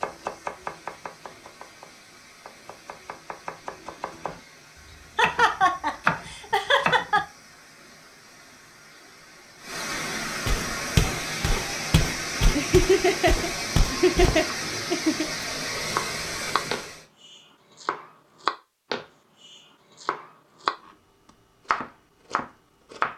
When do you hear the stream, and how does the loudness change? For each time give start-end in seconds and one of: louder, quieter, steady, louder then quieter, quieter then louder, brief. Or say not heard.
0.0-17.1 louder.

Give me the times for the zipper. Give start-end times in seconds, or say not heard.
not heard.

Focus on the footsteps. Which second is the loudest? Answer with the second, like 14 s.
11 s.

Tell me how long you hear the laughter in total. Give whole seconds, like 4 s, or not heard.
5 s.